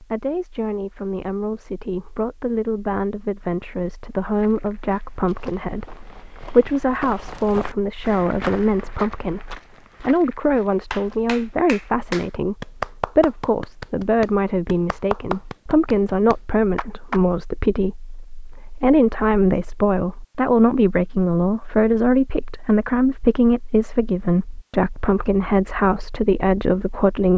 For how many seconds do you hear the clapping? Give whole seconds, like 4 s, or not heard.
6 s.